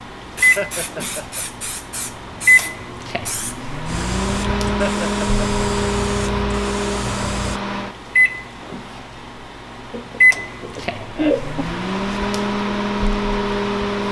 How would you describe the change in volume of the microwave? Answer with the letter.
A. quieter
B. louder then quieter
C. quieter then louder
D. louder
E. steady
E.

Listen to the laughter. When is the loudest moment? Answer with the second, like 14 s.
11 s.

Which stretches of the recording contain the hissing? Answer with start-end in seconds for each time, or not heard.
0.1-7.6.